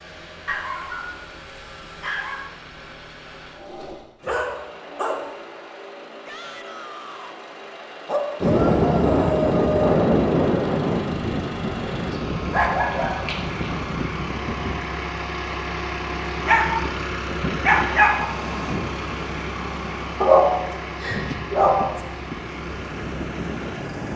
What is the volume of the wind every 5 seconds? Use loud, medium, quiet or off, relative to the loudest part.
off, loud, medium, quiet, quiet.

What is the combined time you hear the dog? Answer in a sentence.
The dog can be heard for 10 seconds in total.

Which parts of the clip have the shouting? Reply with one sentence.
The shouting can be heard from 6.2 to 7.3 s.